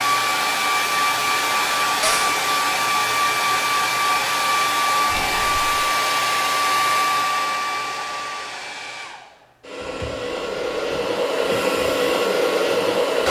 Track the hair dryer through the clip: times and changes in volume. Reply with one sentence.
The hair dryer can be heard from 0.0 to 13.2 s, getting quieter then louder.